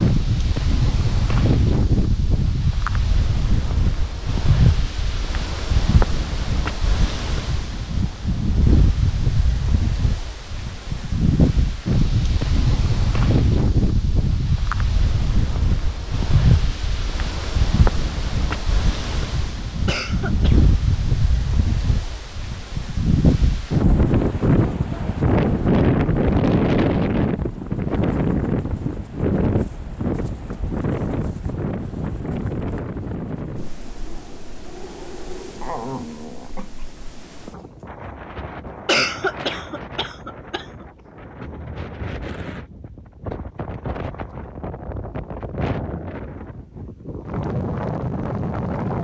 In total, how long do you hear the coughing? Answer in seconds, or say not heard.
3 s.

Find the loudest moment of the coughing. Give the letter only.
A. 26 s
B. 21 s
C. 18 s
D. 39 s
D.